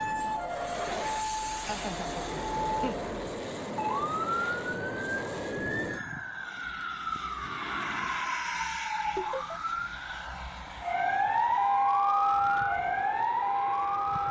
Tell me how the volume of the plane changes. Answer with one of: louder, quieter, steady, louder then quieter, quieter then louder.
quieter.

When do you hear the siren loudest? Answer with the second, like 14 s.
12 s.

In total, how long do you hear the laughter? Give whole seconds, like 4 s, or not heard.
2 s.